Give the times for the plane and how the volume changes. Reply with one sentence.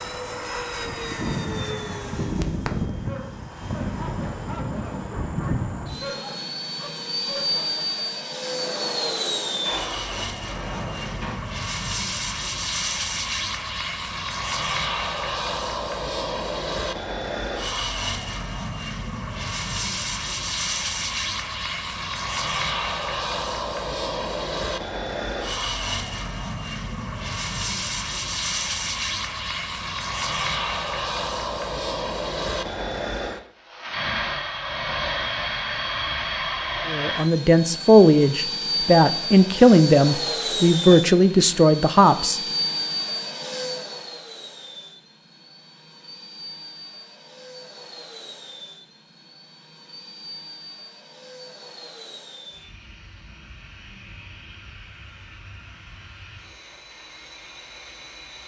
You can hear the plane from 0.0 to 58.4 s, getting quieter.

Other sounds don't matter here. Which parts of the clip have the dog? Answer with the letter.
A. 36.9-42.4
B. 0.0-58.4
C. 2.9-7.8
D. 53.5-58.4
C.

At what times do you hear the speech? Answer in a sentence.
You can hear the speech from 36.9 to 42.4 s.